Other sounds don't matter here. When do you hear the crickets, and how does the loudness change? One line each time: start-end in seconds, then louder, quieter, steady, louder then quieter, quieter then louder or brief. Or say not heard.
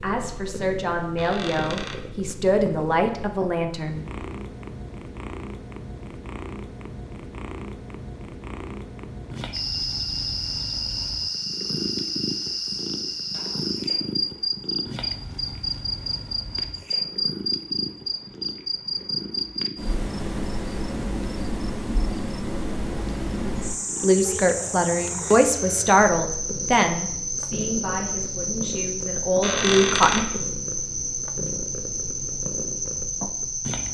9.5-33.8 steady.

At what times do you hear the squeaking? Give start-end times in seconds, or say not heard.
1.1-2.0, 29.4-30.3.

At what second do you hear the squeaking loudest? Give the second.
30 s.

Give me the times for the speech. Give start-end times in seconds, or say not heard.
0.0-4.0, 24.0-30.2.